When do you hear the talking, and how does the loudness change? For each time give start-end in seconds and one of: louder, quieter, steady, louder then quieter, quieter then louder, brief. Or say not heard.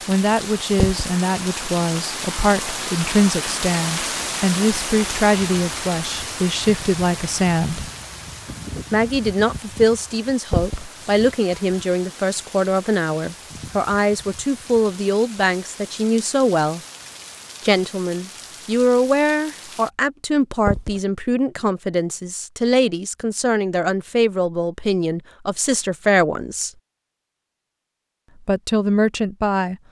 0.1-7.8 steady
8.9-16.8 steady
17.6-26.7 steady
28.4-29.8 brief.